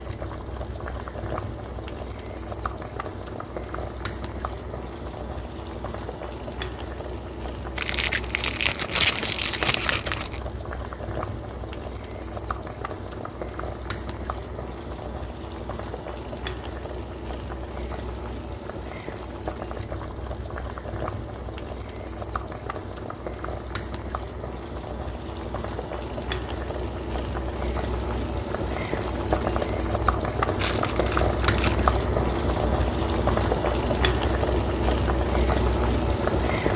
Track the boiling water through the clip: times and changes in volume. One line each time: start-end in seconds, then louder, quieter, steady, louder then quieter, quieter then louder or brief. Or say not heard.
0.0-36.7 louder.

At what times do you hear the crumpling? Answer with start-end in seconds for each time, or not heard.
7.8-10.4, 30.6-31.9.